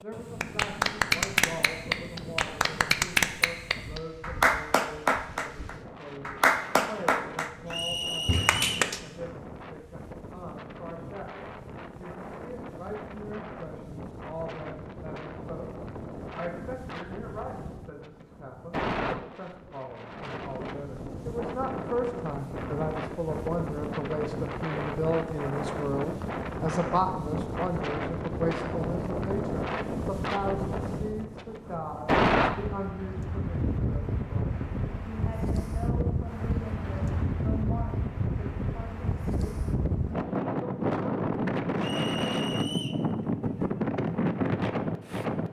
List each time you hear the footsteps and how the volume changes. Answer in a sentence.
You can't hear the footsteps here.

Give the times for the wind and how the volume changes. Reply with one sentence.
The wind can be heard from 0.0 to 45.4 s, getting louder.